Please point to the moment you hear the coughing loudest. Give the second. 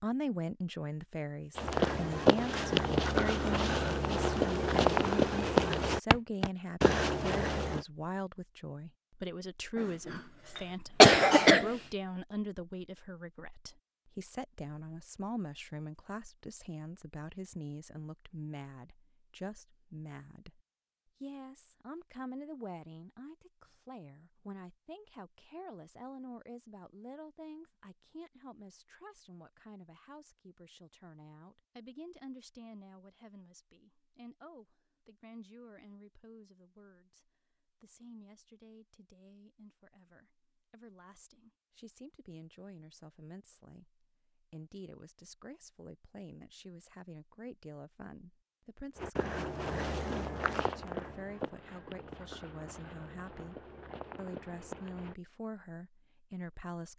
11 s.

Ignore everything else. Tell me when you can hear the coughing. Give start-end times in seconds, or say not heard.
9.8-11.8.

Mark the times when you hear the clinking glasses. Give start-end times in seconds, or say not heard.
not heard.